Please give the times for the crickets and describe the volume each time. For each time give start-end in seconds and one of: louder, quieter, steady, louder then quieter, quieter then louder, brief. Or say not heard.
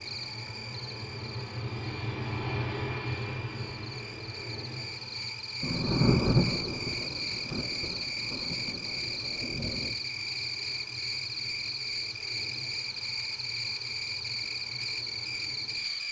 0.0-16.0 louder.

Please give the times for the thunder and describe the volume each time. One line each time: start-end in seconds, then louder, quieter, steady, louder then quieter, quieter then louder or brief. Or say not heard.
5.6-9.9 quieter.